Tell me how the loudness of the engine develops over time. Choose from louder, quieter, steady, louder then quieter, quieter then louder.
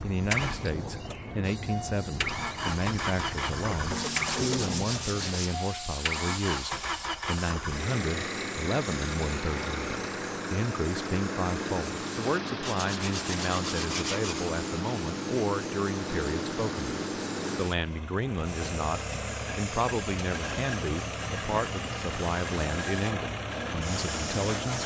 steady.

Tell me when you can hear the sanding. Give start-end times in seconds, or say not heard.
3.9-5.6, 12.6-14.5.